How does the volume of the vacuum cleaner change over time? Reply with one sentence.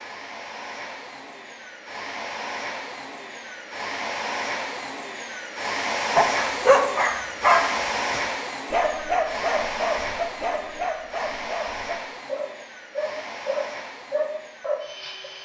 The volume of the vacuum cleaner goes up, then down.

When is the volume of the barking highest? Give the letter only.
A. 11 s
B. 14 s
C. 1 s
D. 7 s
D.